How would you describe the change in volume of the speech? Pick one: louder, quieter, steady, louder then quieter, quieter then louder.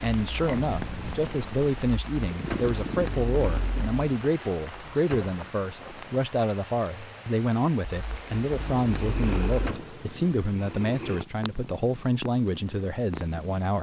steady.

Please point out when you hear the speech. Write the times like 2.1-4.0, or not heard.
0.0-13.7.